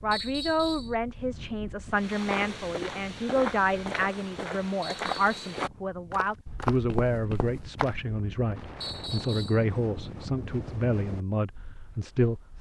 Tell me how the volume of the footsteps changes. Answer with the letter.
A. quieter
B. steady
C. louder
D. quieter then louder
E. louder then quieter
B.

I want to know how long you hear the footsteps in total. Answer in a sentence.
You can hear the footsteps for 6 seconds altogether.